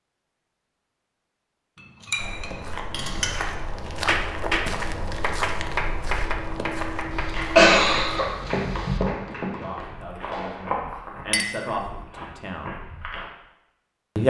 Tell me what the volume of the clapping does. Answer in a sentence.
The loudness of the clapping goes down.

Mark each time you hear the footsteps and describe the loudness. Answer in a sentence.
The footsteps can be heard from 2.1 to 13.3 s, getting quieter.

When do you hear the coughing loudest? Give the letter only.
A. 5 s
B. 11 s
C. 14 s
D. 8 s
D.